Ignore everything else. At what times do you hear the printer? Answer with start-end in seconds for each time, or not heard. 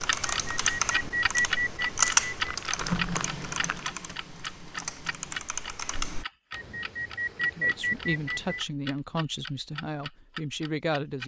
2.7-5.5.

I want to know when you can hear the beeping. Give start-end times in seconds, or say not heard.
0.2-2.5, 6.5-8.6.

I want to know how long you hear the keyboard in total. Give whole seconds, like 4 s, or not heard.
6 s.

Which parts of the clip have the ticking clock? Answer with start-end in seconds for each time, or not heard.
0.1-11.2.